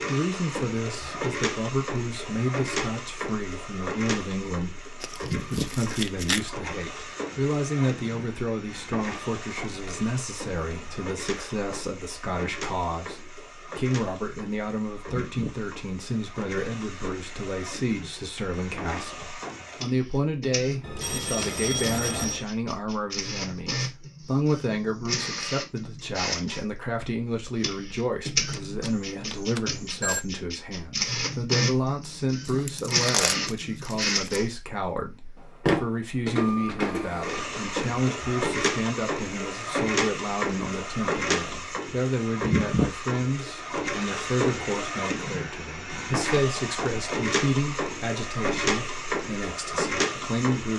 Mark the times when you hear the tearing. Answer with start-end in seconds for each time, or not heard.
5.0-6.5, 32.5-34.4.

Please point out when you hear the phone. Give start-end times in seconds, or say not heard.
20.8-22.4, 28.5-30.2.